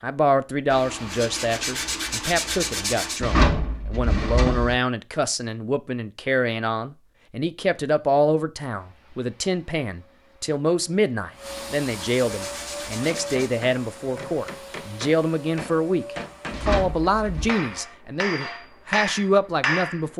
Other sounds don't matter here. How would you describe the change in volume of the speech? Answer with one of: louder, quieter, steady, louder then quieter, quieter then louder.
steady.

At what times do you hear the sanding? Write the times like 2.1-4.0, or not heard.
0.7-3.2, 11.4-13.6.